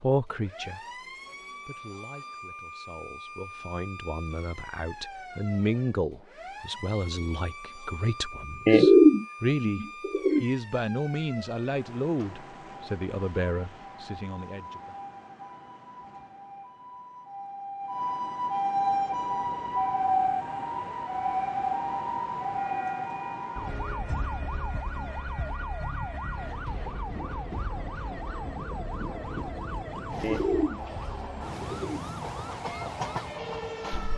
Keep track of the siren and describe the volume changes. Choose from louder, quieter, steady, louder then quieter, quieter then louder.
louder then quieter.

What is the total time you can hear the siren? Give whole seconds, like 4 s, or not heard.
34 s.